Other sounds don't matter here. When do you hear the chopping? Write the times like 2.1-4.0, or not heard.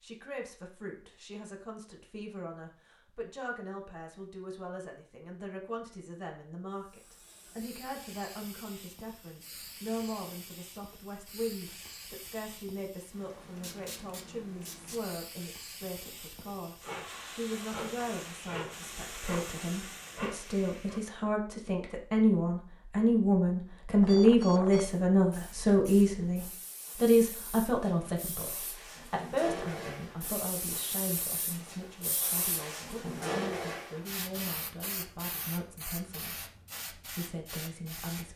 not heard.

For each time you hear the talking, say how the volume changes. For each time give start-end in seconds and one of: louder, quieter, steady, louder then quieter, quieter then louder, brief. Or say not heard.
0.0-38.3 louder then quieter.